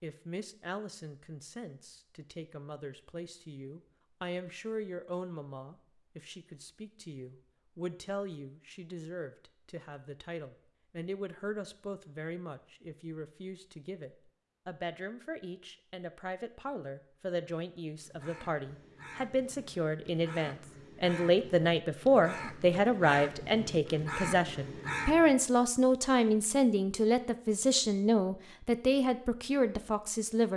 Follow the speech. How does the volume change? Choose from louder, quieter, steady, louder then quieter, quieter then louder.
louder.